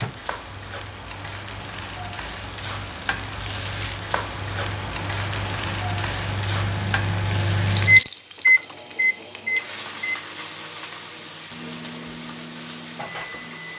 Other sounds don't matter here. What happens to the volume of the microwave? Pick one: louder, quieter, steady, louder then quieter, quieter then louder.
louder then quieter.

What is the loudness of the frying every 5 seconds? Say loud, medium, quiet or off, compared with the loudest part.
loud, loud, medium.